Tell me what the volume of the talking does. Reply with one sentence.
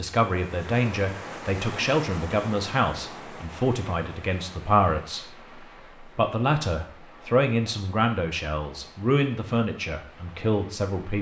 The loudness of the talking stays about the same.